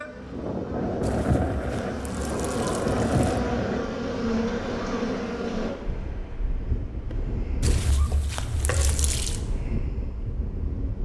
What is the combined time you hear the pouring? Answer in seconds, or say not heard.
4 s.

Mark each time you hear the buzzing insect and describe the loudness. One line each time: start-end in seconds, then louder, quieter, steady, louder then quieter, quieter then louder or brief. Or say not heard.
0.0-5.7 louder.